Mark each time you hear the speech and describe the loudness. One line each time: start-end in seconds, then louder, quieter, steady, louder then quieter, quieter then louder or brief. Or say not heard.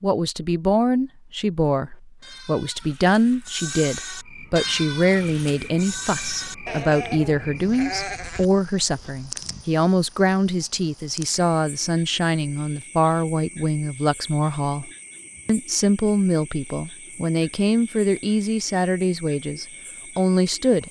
0.0-20.8 steady.